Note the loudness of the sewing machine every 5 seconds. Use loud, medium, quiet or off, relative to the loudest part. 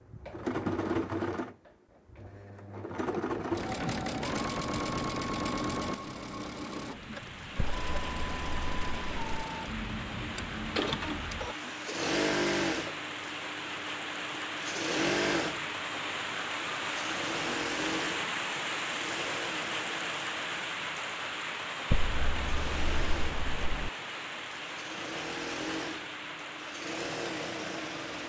loud, loud, loud, loud, medium, medium.